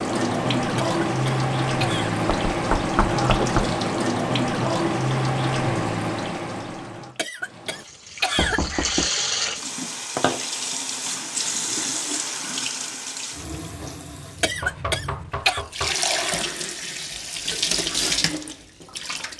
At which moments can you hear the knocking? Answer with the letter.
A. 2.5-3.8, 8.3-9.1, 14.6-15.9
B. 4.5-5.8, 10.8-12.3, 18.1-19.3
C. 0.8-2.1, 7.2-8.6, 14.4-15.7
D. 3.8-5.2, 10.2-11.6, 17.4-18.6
A.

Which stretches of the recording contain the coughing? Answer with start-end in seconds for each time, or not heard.
0.8-2.1, 7.2-8.6, 14.4-15.7.